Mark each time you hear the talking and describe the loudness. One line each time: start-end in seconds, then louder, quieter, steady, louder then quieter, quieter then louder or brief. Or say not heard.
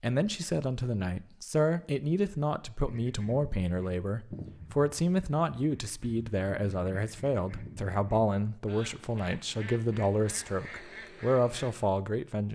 0.0-12.4 steady.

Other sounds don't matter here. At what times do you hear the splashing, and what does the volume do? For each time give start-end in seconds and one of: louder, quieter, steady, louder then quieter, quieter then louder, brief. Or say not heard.
not heard.